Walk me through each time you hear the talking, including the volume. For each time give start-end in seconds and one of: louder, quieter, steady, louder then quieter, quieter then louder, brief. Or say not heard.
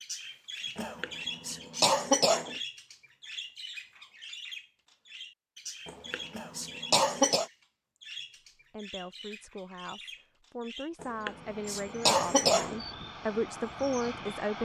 8.7-14.6 louder.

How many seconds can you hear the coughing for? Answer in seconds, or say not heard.
5 s.